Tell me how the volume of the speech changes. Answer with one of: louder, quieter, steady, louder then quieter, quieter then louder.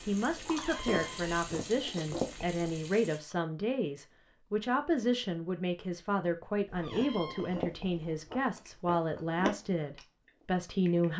steady.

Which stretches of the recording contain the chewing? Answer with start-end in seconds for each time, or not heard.
0.0-2.6, 6.7-11.1.